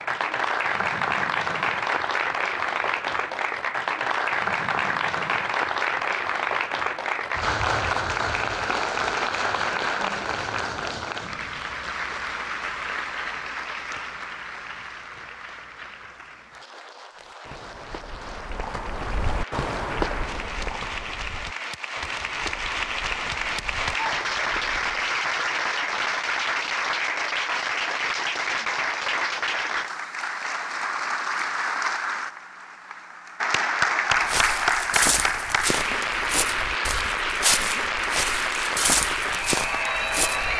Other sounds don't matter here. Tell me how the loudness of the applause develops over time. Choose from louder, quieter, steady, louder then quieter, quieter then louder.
quieter then louder.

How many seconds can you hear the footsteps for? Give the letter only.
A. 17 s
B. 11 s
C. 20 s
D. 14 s
D.